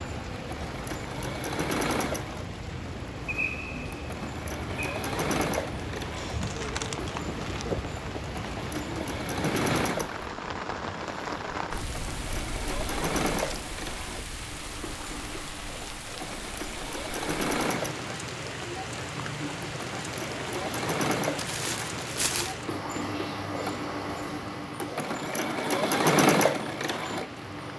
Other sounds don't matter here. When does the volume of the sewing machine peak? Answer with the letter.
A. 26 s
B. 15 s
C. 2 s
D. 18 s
A.